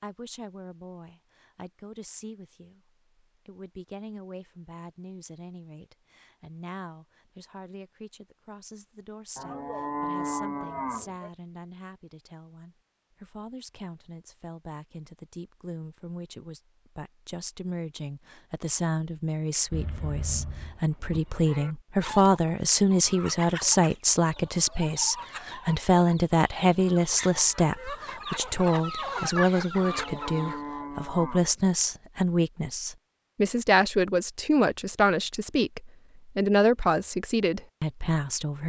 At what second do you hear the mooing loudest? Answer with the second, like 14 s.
10 s.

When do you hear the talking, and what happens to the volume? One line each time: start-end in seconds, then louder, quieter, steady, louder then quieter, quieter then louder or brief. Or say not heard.
0.0-38.6 louder.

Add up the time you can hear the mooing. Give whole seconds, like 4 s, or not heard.
6 s.